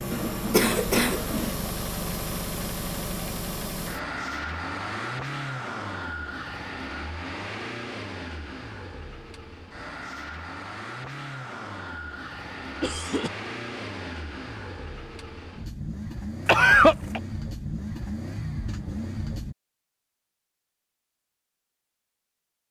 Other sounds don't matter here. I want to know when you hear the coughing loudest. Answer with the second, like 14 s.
17 s.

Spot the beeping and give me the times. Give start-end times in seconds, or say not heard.
not heard.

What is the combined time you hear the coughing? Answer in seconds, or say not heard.
3 s.